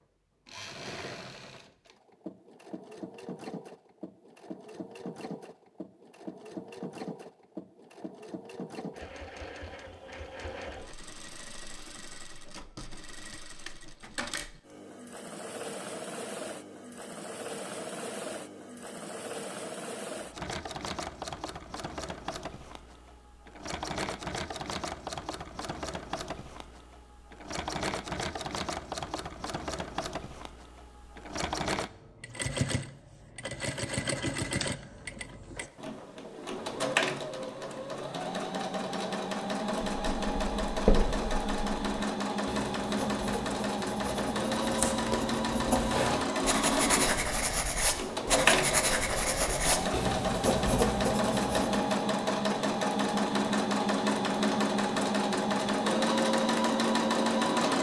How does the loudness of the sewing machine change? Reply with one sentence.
The loudness of the sewing machine goes up.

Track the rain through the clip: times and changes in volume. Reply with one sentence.
The rain can't be heard in this clip.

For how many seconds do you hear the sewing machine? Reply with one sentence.
The sewing machine can be heard for 57 seconds in total.